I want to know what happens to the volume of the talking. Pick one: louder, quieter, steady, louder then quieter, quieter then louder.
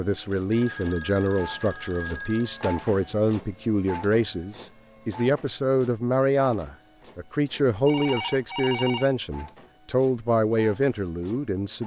steady.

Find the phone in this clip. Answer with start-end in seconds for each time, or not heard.
0.5-3.1, 7.8-9.2.